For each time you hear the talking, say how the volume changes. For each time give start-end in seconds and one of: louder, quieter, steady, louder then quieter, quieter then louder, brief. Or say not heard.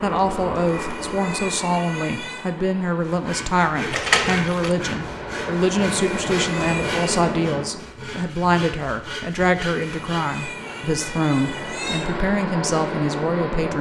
0.0-13.7 steady.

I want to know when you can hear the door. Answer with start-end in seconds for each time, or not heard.
3.9-4.8.